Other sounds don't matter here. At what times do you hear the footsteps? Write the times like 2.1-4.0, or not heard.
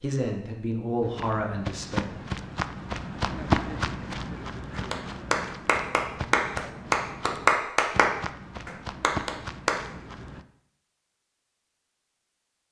1.0-10.4.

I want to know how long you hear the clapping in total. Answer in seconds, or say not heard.
5 s.